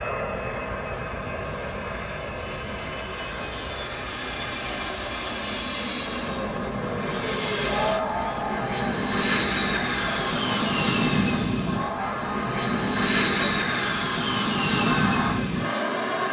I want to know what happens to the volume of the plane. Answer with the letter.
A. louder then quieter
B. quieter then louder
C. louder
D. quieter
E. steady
C.